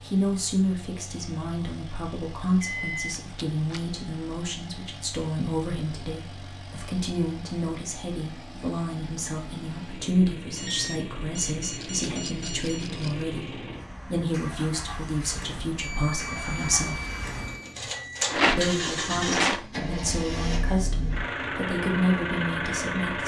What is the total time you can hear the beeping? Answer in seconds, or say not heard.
5 s.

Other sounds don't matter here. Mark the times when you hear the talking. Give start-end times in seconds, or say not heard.
0.1-17.0, 18.6-23.2.